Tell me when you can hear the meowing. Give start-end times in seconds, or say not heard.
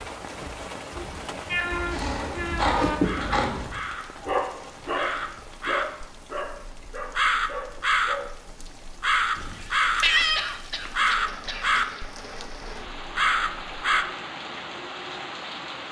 0.9-3.0, 9.3-10.5.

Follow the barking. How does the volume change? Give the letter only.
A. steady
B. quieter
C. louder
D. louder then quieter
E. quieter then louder
B.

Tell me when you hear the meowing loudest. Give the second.
10 s.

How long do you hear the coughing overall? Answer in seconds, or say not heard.
3 s.